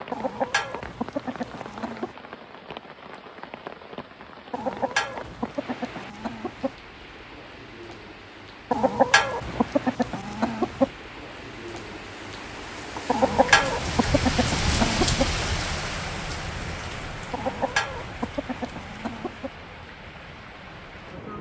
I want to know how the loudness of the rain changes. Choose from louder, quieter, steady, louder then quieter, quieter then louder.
louder then quieter.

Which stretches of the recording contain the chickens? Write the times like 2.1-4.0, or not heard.
0.1-2.1, 4.5-6.8, 8.7-10.9, 13.1-15.2, 17.3-19.5.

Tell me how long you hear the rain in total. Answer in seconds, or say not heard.
21 s.